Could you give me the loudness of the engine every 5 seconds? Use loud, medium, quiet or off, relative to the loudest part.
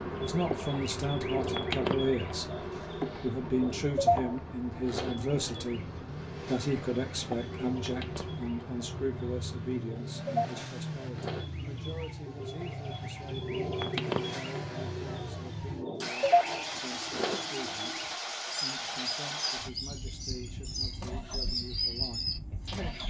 medium, medium, loud, loud, medium.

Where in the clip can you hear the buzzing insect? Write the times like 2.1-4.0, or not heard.
0.0-10.1.